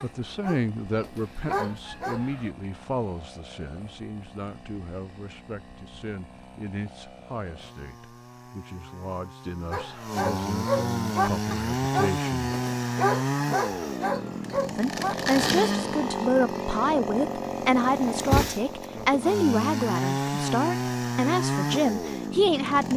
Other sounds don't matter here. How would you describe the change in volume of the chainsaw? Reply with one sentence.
The loudness of the chainsaw goes up.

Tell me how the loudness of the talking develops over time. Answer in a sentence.
The loudness of the talking goes down, then up.